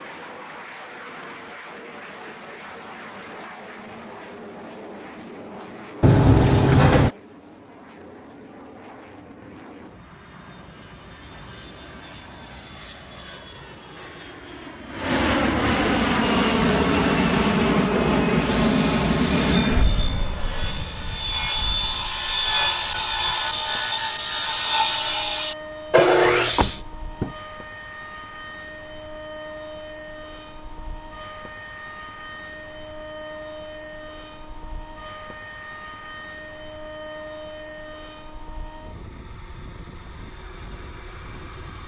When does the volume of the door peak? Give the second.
6 s.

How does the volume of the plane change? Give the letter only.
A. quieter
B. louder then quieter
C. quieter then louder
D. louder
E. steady
B.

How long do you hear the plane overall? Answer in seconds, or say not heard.
42 s.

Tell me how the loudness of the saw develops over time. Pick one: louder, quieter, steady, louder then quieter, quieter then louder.
louder.